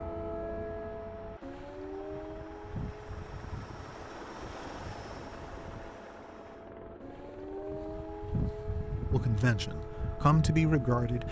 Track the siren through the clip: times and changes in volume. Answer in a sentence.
You can hear the siren from 0.0 to 11.2 s, getting quieter then louder.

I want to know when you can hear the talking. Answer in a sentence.
You can hear the talking from 9.1 to 11.2 s.